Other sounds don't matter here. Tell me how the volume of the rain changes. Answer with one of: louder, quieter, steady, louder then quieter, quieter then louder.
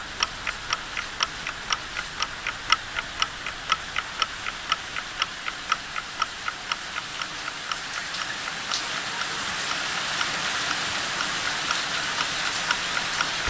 louder.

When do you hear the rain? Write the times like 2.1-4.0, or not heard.
0.0-13.4.